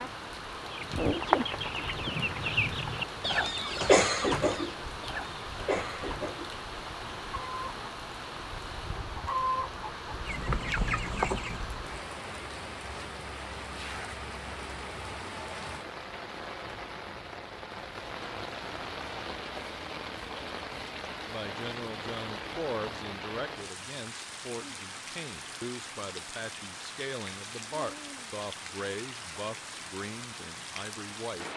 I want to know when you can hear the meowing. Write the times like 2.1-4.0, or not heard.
not heard.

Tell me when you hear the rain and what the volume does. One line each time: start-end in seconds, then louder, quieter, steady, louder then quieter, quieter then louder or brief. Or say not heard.
0.0-31.5 steady.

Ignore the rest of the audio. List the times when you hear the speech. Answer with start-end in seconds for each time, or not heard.
21.2-31.5.